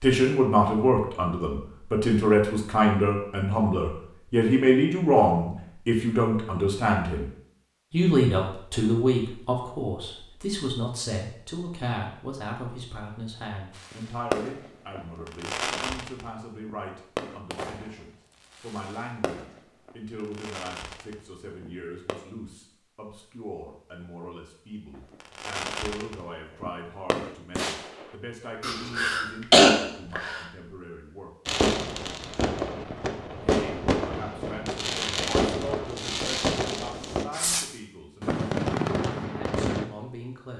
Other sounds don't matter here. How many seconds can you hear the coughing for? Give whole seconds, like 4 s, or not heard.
2 s.